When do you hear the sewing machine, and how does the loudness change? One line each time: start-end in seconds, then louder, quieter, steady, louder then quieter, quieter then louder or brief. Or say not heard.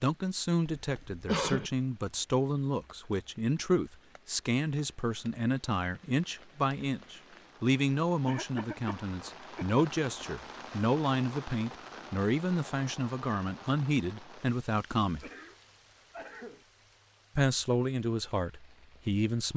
not heard.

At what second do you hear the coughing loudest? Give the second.
1 s.